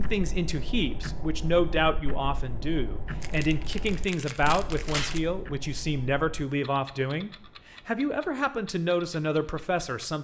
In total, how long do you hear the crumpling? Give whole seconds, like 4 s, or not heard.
2 s.